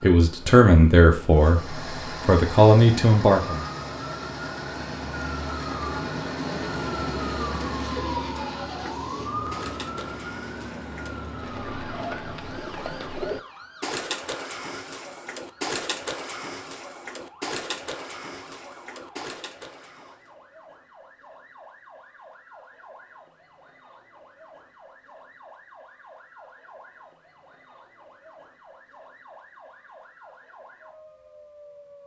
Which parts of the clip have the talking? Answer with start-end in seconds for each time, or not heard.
0.0-3.6.